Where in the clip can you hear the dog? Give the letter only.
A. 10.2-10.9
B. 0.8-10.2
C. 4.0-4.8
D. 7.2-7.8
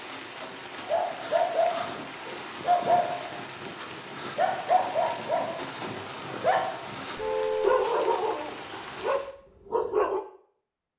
B.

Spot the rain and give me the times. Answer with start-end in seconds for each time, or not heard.
0.0-9.3.